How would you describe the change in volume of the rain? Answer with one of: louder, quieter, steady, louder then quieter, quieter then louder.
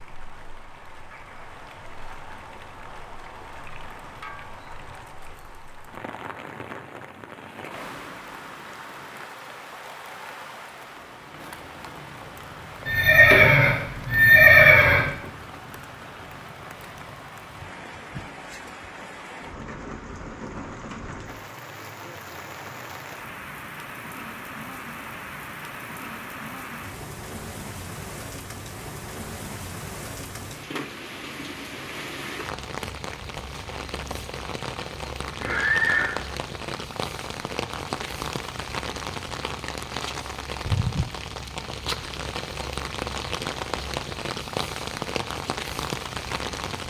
louder.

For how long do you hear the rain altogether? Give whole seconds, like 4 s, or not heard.
47 s.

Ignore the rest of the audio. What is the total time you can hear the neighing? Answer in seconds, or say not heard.
3 s.